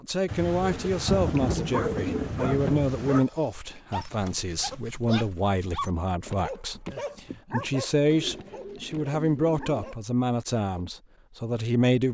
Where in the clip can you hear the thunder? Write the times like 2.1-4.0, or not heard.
0.2-3.2.